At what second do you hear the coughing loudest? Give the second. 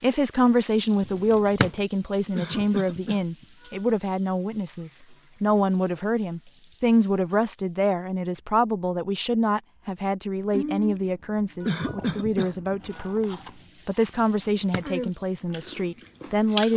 12 s.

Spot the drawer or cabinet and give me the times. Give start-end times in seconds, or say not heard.
1.1-1.7, 14.2-14.8.